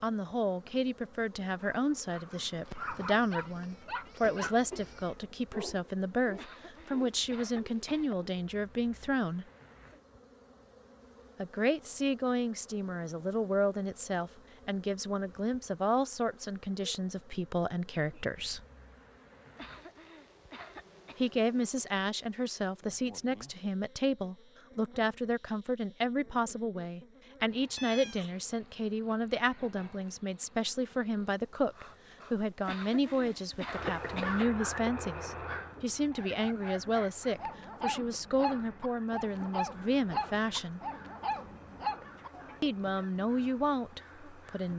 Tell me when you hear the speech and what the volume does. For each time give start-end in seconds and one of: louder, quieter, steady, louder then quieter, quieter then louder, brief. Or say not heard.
0.0-9.4 steady
11.3-18.6 steady
21.1-40.8 steady
42.6-44.7 brief.